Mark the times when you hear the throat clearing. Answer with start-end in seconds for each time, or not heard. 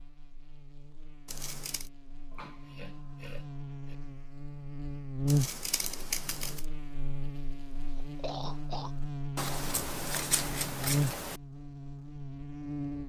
2.3-4.0, 7.9-8.9.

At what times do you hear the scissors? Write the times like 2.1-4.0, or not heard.
1.2-1.9, 5.2-6.7, 9.3-11.4.